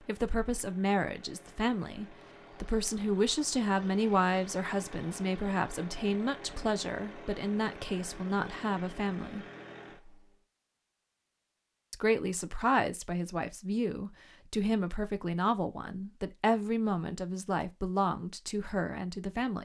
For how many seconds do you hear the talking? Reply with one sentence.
You can hear the talking for 17 seconds altogether.